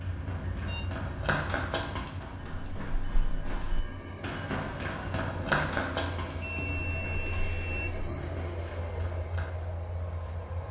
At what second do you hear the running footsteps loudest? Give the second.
6 s.